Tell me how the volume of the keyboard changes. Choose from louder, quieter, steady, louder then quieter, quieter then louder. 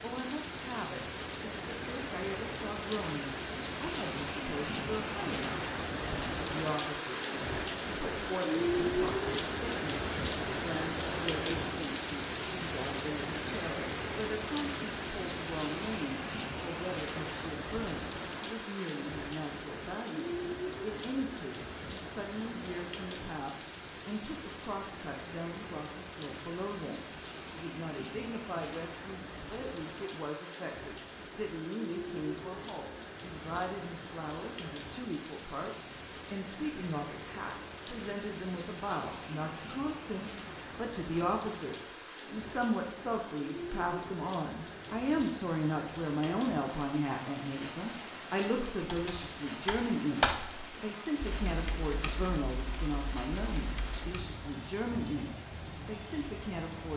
louder then quieter.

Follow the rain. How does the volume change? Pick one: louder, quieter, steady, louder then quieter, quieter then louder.
quieter.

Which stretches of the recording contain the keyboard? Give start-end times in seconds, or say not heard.
48.7-54.2.